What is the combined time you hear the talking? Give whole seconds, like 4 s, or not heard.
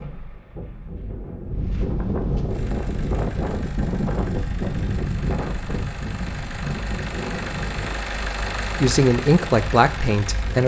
2 s.